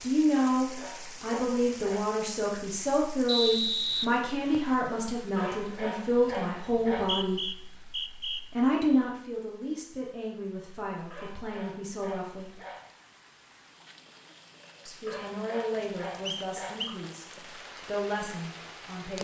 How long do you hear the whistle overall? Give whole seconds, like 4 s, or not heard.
4 s.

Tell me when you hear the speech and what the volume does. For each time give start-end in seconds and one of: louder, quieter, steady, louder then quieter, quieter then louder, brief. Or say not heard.
0.0-12.6 quieter
14.8-19.2 quieter then louder.